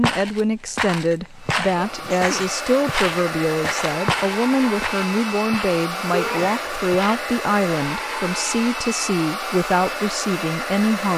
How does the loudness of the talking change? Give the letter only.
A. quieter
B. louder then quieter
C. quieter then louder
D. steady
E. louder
D.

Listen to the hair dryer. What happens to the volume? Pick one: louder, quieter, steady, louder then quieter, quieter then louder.
steady.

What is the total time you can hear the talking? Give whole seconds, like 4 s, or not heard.
11 s.